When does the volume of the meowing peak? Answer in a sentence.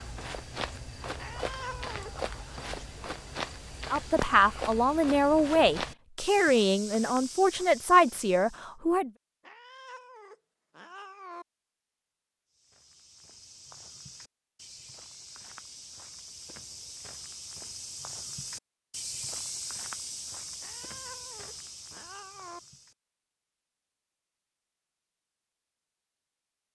The volume of the meowing peaks at 2 seconds.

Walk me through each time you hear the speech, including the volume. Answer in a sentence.
You can hear the speech from 3.9 to 9.1 s, at a steady volume.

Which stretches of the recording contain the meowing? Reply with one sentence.
You can hear the meowing from 1.1 to 2.6 s, from 9.4 to 11.4 s and from 20.6 to 22.6 s.